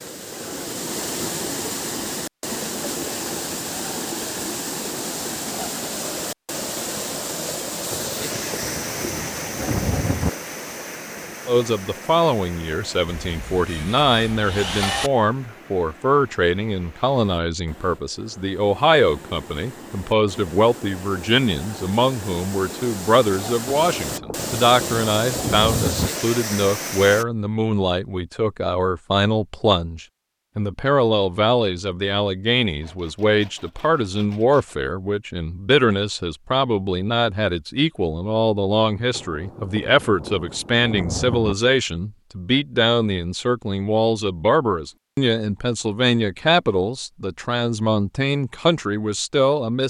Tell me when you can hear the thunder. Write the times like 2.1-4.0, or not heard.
7.9-10.3, 23.8-26.1, 39.1-41.5.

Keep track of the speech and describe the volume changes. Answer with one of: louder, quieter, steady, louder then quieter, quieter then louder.
steady.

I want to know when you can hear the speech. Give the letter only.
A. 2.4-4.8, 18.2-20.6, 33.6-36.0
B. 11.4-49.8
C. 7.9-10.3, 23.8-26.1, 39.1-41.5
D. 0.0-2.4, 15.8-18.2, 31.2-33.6
B.